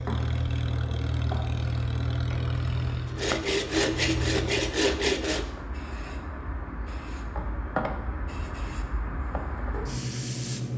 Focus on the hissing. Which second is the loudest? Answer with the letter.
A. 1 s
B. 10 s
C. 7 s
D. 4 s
B.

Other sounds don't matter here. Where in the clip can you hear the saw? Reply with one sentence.
The saw can be heard from 3.0 to 5.5 s.